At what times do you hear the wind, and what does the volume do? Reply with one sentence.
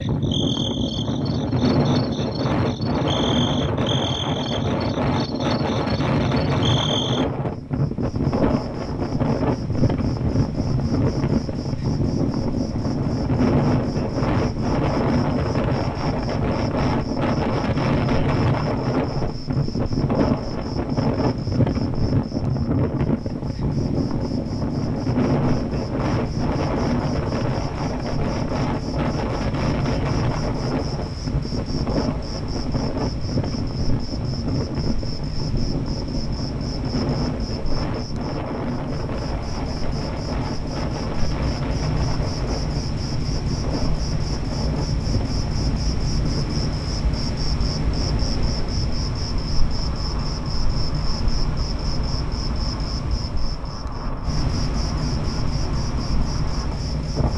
The wind can be heard from 0.0 to 57.3 s, getting quieter.